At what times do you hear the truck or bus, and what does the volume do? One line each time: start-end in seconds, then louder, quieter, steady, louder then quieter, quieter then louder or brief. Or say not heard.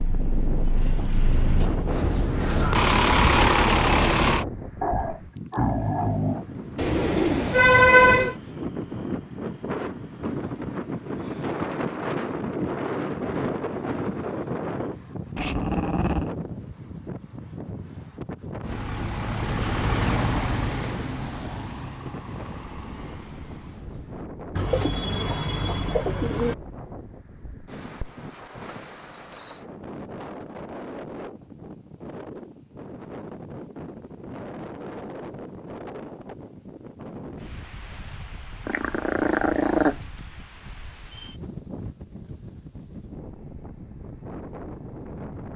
0.0-4.5 louder
18.6-24.3 quieter.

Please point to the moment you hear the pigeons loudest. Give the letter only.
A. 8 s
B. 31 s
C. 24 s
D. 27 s
A.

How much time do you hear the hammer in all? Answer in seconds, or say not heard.
not heard.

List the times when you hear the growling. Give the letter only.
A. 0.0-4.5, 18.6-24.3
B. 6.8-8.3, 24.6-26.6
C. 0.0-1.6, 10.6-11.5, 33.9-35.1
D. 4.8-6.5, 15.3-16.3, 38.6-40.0
D.